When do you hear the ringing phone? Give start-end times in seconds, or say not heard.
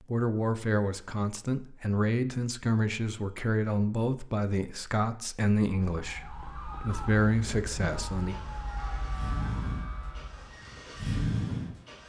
not heard.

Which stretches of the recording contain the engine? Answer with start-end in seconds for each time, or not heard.
7.8-12.0.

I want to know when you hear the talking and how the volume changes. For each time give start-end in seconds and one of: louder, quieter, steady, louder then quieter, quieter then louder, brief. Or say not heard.
0.1-8.3 steady.